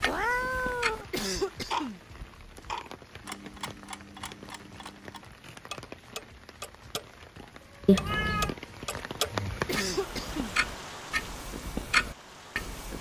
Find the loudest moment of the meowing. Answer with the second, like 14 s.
8 s.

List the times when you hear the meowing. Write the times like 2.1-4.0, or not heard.
0.0-1.1, 7.8-8.6.